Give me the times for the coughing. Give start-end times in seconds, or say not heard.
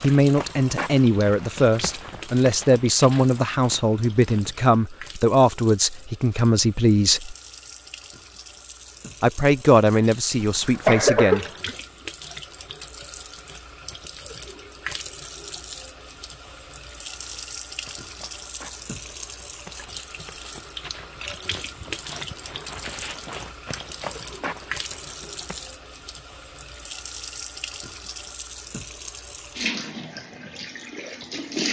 10.4-11.8.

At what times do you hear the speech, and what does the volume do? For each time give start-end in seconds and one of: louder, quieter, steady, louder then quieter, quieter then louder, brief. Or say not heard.
0.0-7.3 steady
9.2-11.4 brief.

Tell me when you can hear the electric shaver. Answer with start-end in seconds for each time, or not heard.
not heard.